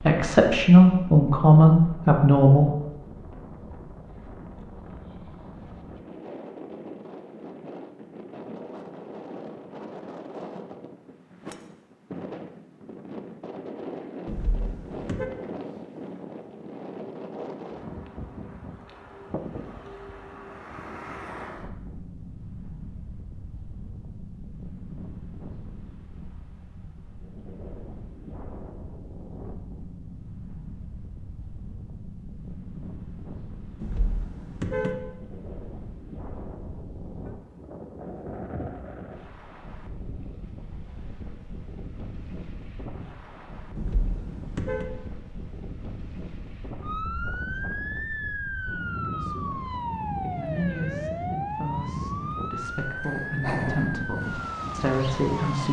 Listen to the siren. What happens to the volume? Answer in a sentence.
The loudness of the siren stays about the same.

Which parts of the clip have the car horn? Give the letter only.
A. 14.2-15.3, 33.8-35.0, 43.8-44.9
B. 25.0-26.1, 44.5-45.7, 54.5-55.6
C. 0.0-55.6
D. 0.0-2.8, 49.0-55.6
A.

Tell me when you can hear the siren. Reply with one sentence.
You can hear the siren from 46.8 to 55.6 s.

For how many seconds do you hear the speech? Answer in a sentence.
You can hear the speech for 9 seconds altogether.